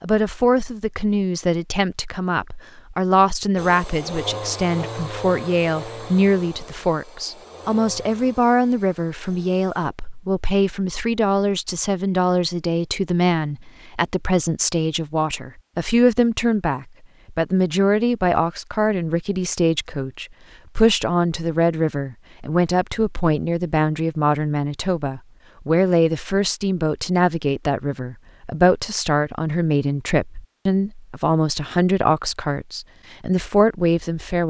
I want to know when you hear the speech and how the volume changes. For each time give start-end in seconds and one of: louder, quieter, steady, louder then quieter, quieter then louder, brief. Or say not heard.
0.0-34.4 steady.